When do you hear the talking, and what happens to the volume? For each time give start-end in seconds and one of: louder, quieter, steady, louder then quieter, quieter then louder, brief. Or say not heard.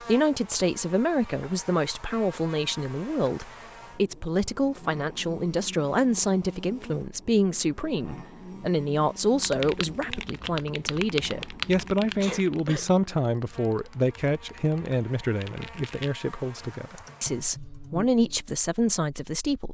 0.1-19.6 steady.